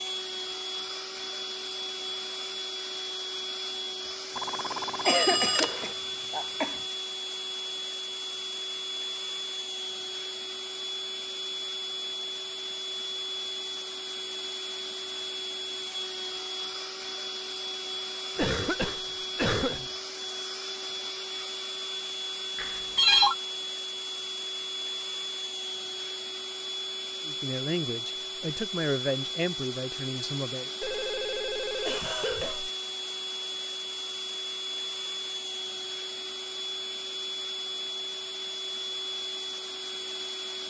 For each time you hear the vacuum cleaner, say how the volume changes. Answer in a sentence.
The vacuum cleaner can be heard from 0.0 to 40.6 s, at a steady volume.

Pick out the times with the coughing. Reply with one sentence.
The coughing can be heard from 5.0 to 6.7 s, from 18.4 to 19.9 s and from 31.9 to 32.6 s.